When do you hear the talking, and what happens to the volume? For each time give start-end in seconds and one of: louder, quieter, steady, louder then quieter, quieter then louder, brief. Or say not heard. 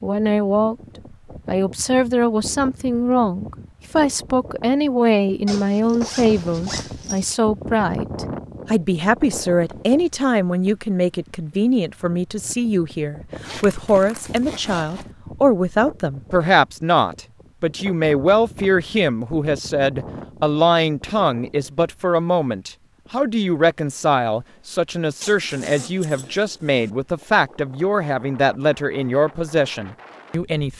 0.0-0.8 brief
1.4-30.7 steady.